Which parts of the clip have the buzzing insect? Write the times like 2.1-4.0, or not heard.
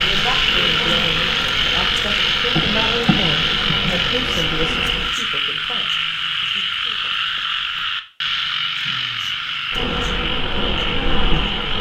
0.0-5.1, 9.7-11.7.